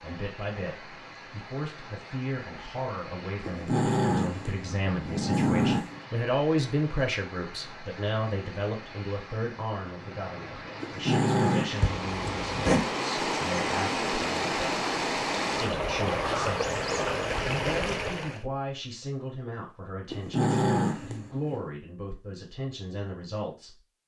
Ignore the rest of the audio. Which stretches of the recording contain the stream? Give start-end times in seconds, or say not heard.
0.0-18.4.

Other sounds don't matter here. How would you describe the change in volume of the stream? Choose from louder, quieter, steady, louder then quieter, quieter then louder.
louder.